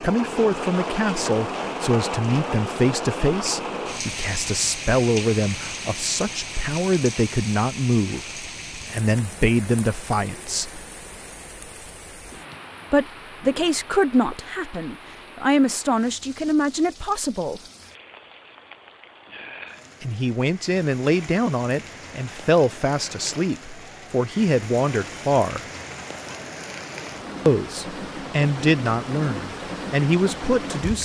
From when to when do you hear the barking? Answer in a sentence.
You can't hear the barking here.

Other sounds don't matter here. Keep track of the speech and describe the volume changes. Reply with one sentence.
The loudness of the speech stays about the same.